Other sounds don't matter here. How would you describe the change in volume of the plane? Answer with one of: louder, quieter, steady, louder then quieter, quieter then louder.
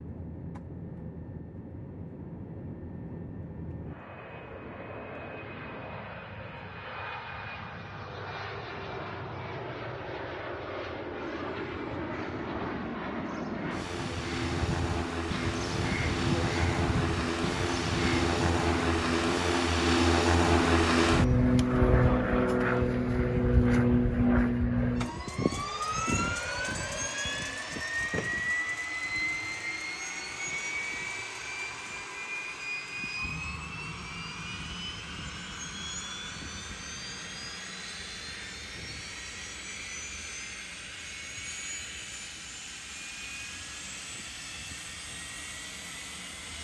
louder then quieter.